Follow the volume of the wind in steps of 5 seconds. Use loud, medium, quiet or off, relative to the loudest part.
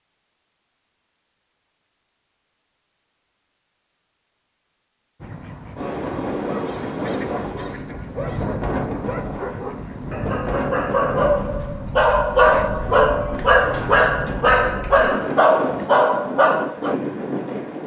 off, loud, loud, loud.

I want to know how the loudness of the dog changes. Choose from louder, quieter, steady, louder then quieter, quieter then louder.
louder.